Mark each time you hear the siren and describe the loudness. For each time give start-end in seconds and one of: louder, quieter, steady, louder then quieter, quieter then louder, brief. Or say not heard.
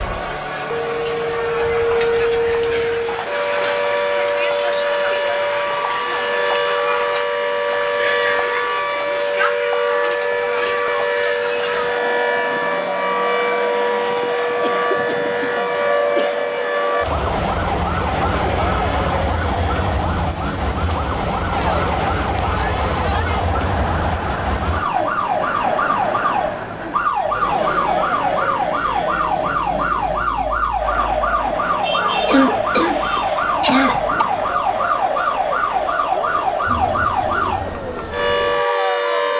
0.0-39.3 steady.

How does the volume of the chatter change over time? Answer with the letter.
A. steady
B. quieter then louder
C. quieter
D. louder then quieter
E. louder
A.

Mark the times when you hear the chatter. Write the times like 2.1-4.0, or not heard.
0.0-39.3.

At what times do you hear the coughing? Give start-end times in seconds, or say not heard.
3.0-3.8, 14.6-16.4, 32.2-34.2.